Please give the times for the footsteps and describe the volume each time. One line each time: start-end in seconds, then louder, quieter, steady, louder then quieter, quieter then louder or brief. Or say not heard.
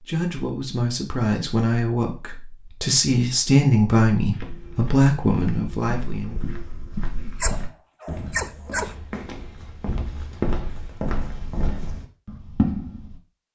4.3-13.2 louder.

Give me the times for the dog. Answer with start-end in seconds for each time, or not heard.
7.4-8.9.